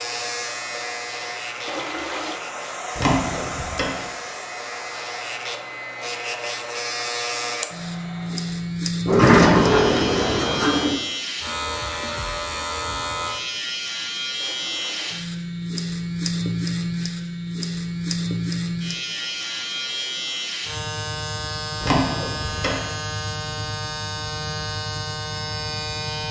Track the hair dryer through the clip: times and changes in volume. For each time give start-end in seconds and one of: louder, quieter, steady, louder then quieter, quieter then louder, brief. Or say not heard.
0.0-8.8 louder then quieter.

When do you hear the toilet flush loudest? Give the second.
2 s.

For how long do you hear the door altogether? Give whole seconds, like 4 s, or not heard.
4 s.